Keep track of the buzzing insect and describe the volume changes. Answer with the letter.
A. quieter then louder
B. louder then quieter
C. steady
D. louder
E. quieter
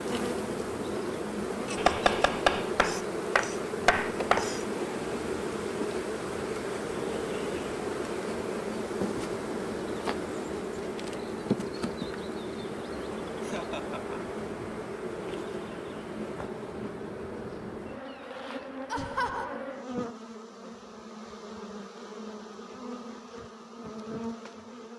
E.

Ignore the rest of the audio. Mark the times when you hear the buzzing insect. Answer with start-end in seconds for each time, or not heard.
0.0-24.9.